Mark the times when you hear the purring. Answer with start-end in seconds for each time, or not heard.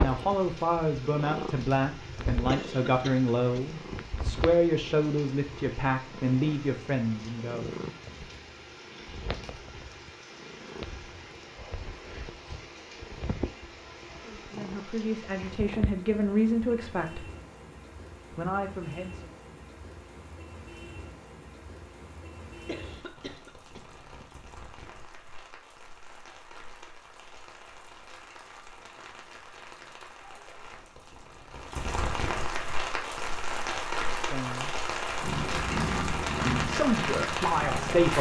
0.0-15.9, 35.2-38.1.